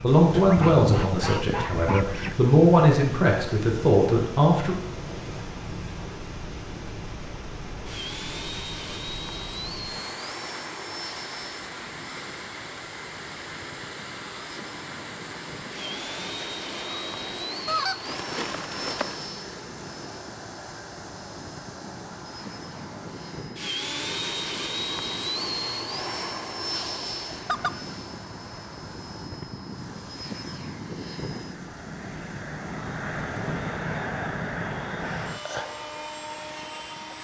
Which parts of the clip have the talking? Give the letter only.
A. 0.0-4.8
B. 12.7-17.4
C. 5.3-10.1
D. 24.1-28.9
A.